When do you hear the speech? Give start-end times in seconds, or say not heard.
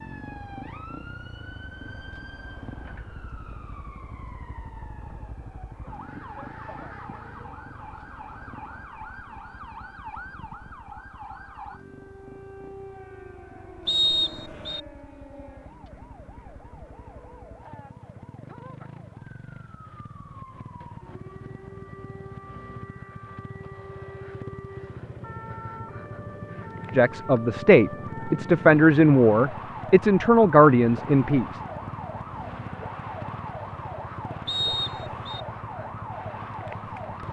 26.9-31.4.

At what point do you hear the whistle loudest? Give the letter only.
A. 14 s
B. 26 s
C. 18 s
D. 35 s
A.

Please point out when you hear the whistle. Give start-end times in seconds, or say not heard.
13.8-14.8, 34.5-35.4.